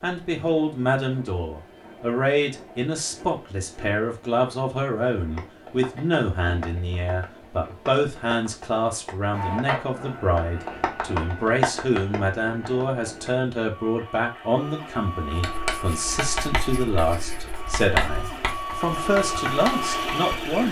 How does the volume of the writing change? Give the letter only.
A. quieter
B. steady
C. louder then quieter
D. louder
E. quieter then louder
C.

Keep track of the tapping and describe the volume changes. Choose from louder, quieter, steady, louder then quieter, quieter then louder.
louder.